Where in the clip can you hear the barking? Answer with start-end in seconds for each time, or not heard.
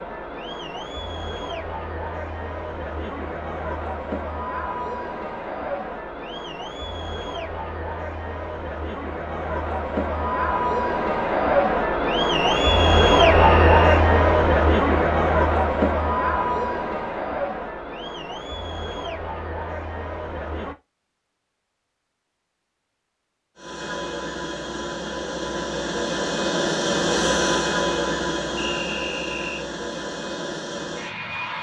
not heard.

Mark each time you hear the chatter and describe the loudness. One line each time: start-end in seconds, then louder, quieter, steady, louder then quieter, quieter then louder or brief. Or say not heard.
0.0-20.8 louder then quieter.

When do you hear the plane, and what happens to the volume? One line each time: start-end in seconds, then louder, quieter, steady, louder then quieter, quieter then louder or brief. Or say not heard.
23.6-31.5 louder then quieter.